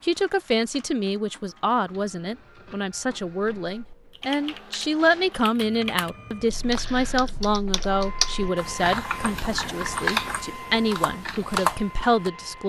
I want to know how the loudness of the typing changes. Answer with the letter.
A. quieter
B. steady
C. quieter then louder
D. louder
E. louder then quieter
D.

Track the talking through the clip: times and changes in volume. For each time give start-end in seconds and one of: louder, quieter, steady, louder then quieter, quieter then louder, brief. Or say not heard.
0.0-12.6 steady.